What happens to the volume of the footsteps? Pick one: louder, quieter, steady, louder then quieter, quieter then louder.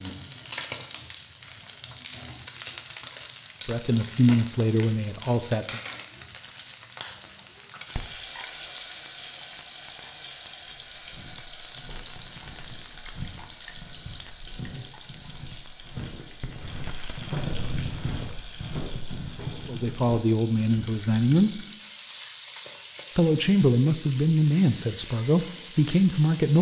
louder.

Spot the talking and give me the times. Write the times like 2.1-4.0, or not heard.
3.6-5.8, 19.6-21.6, 23.1-26.5.